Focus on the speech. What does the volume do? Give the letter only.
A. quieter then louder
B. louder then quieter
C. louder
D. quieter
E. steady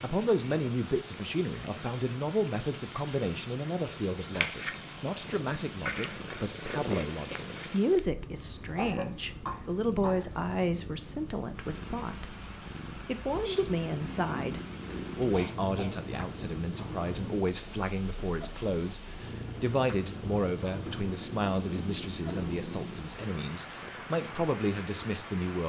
E.